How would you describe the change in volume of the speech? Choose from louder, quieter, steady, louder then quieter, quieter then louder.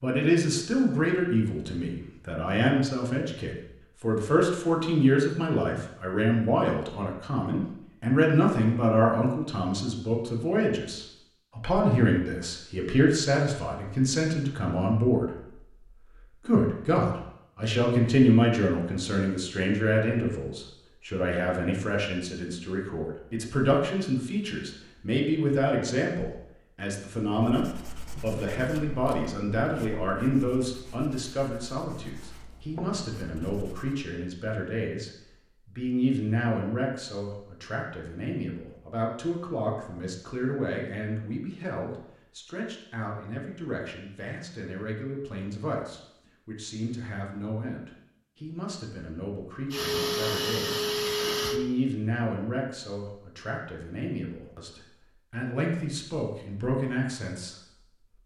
quieter.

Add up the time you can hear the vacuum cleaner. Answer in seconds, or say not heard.
2 s.